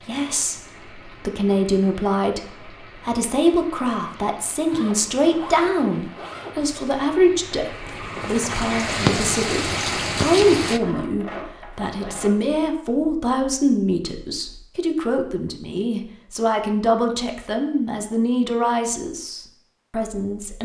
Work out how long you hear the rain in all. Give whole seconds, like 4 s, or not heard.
11 s.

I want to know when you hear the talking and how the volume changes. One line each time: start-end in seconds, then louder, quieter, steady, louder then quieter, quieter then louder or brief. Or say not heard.
0.1-20.5 steady.